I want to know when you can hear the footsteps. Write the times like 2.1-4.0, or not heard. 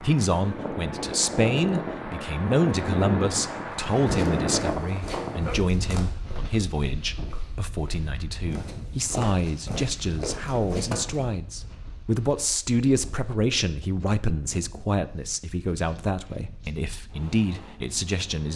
3.6-11.2.